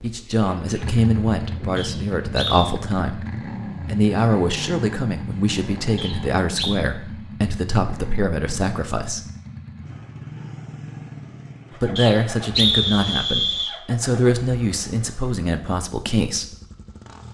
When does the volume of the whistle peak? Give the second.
13 s.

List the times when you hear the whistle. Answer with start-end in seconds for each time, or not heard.
1.8-2.7, 6.0-6.8, 11.9-13.8.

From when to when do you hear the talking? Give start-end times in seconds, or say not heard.
0.0-9.2, 11.8-16.6.